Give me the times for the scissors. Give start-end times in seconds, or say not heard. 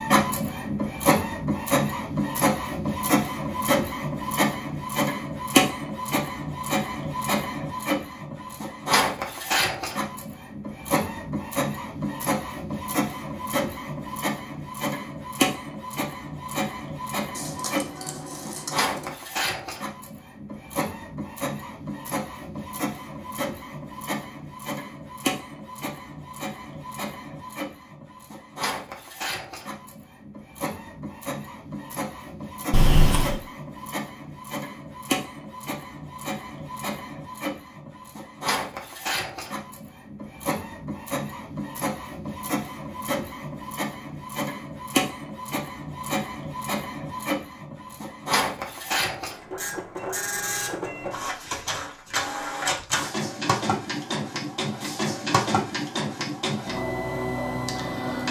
17.4-19.1, 32.7-33.4.